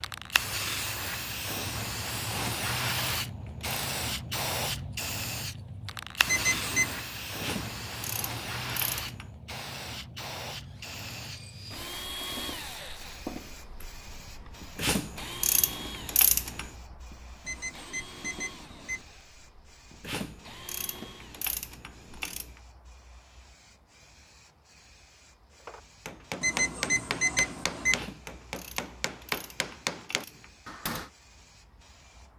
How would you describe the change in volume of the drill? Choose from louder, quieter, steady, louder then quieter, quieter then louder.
quieter.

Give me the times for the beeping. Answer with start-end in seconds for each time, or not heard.
6.2-7.0, 17.4-19.1, 26.4-28.0.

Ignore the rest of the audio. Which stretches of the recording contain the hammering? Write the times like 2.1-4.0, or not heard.
25.6-31.1.